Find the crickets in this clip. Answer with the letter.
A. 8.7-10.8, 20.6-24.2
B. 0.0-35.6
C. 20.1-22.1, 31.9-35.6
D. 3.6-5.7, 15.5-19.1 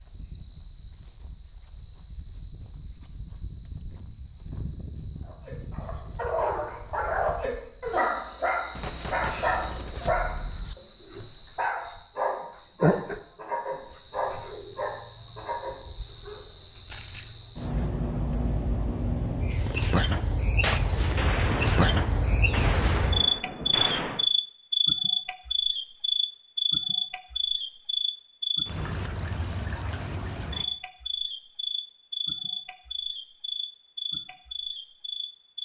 B.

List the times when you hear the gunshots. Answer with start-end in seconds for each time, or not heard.
8.7-10.8, 20.6-24.2.